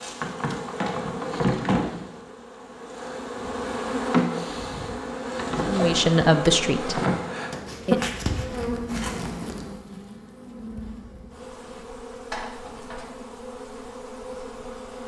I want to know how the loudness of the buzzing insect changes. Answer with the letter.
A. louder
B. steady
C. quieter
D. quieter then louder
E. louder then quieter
C.